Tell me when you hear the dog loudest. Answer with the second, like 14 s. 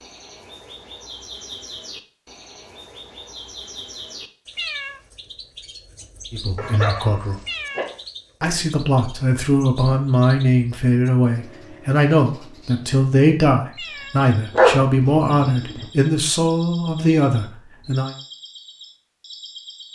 15 s.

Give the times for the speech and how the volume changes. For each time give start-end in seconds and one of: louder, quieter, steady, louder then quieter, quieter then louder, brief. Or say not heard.
6.3-7.3 brief
8.4-18.1 steady.